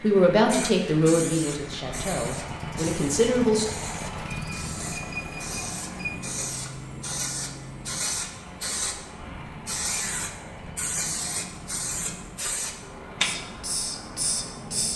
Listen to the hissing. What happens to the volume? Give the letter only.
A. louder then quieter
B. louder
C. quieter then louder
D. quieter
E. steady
B.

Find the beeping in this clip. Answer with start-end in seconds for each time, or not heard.
4.2-6.1.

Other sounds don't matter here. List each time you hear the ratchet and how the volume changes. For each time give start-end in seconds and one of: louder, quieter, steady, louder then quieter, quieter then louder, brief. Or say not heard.
not heard.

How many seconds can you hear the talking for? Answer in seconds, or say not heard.
4 s.